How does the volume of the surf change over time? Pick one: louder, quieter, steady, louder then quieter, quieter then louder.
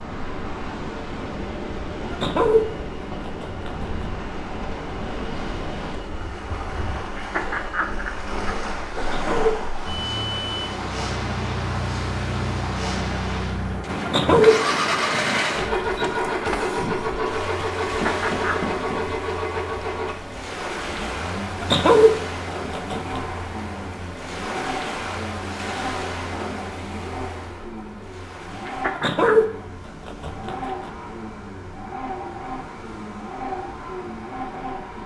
quieter.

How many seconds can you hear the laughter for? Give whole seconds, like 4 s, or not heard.
3 s.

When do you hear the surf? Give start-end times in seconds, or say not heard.
0.0-35.0.